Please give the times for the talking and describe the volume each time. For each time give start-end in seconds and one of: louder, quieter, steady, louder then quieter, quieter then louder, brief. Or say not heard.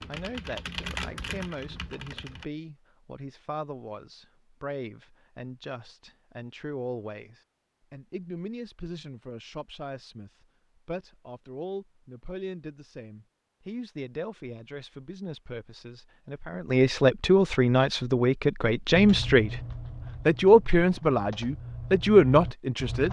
0.1-19.6 louder
20.2-23.0 brief.